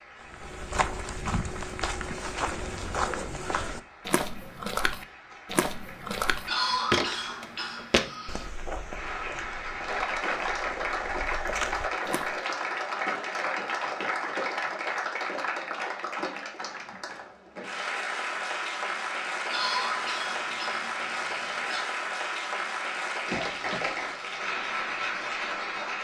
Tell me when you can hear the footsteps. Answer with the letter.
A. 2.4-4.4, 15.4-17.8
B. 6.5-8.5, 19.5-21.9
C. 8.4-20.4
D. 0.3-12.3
D.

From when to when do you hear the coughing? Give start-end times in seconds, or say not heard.
6.5-8.5, 19.5-21.9.